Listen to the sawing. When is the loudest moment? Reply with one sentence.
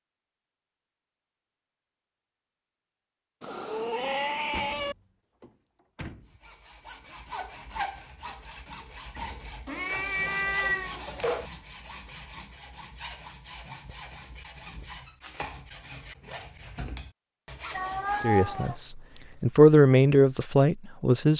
The volume of the sawing peaks at 8 seconds.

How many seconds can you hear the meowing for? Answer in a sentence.
You can hear the meowing for 5 seconds altogether.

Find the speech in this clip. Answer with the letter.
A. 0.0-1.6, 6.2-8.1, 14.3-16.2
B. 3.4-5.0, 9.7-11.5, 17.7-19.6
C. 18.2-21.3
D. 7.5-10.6
C.